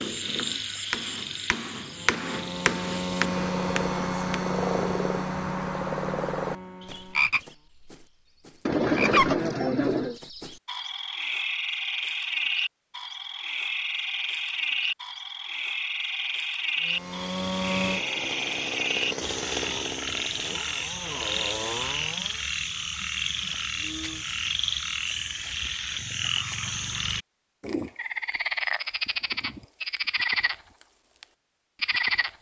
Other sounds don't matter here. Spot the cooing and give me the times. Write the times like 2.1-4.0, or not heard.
8.7-10.2.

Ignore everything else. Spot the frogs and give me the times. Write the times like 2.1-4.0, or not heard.
0.0-32.3.